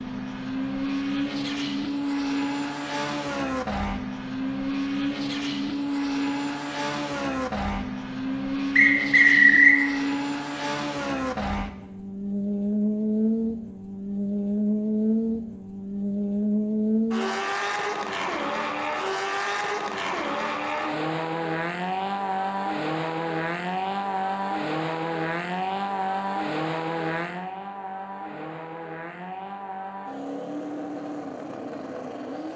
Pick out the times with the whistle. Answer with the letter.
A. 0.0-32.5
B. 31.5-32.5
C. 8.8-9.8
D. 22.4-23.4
C.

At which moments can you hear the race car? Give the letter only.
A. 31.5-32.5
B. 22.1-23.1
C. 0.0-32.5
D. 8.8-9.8
C.